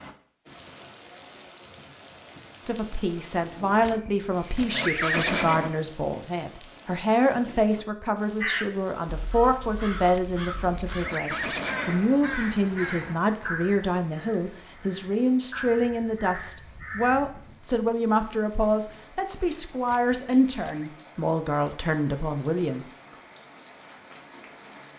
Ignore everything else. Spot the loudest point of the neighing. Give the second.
5 s.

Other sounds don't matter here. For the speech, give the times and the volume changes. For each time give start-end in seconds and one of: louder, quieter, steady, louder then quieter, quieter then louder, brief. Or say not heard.
2.6-22.9 steady.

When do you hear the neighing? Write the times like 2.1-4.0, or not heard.
3.8-5.8, 10.1-12.1, 19.9-20.9.